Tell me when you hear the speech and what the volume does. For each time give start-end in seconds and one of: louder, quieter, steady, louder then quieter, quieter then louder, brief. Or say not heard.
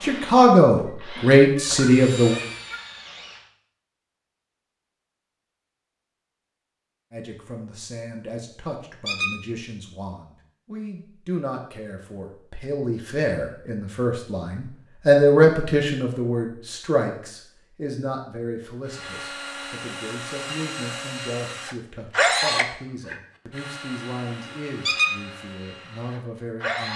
0.0-2.4 brief
7.1-26.9 louder then quieter.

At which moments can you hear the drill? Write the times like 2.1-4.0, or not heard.
0.0-3.5, 18.9-26.9.